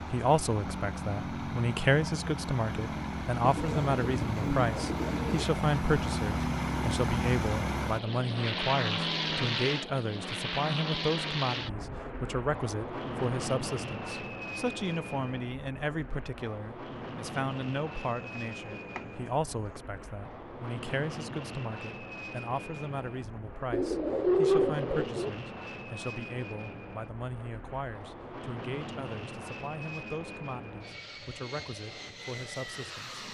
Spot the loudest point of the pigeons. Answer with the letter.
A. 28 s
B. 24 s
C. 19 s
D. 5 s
B.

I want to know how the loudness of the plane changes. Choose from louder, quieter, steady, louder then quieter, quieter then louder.
quieter.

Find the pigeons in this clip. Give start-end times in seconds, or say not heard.
3.4-5.5, 18.2-19.1, 23.7-25.3.